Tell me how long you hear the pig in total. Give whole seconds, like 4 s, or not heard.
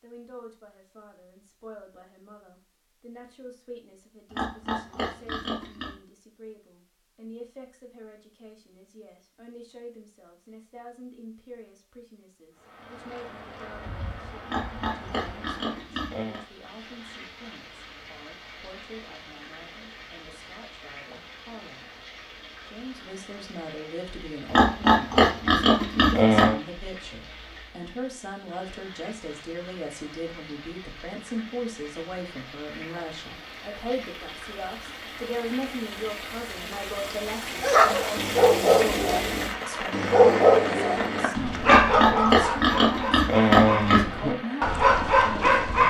8 s.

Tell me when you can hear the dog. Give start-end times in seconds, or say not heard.
37.6-45.8.